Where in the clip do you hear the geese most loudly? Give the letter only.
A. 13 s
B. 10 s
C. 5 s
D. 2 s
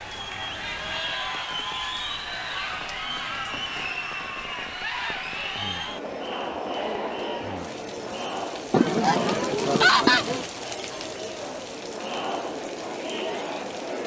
B.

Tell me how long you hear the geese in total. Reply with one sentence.
You can hear the geese for 2 seconds altogether.